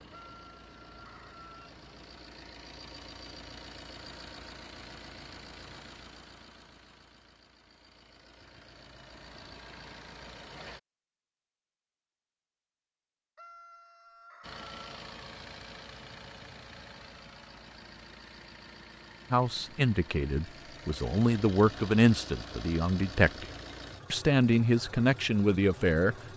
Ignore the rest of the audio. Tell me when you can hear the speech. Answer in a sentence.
The speech can be heard from 19.3 to 23.4 s and from 24.1 to 26.1 s.